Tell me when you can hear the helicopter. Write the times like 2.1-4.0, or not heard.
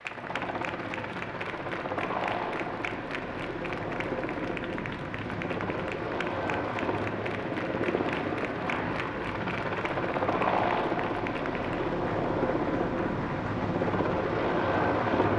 0.0-15.3.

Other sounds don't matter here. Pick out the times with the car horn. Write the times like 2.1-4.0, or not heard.
8.0-9.0.